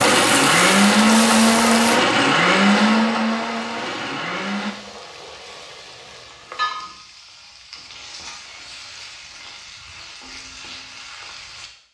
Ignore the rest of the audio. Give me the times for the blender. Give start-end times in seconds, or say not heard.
0.0-4.8.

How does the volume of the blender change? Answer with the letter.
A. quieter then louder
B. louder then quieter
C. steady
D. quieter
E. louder
D.